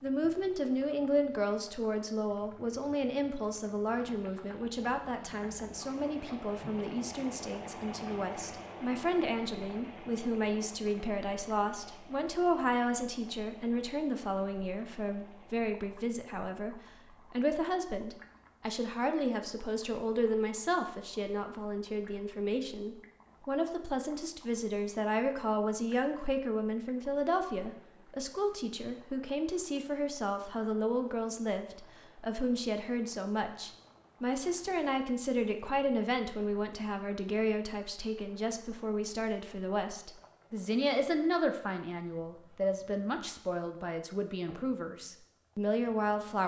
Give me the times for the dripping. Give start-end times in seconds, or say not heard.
not heard.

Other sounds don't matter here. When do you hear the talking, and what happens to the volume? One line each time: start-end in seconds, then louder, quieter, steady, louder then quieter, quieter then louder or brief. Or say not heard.
0.0-46.4 steady.